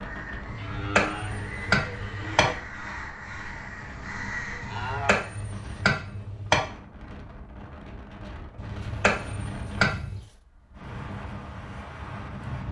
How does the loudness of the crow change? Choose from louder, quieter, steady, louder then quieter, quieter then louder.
louder.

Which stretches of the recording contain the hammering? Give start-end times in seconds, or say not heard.
0.5-2.5, 4.6-6.6, 8.6-10.2.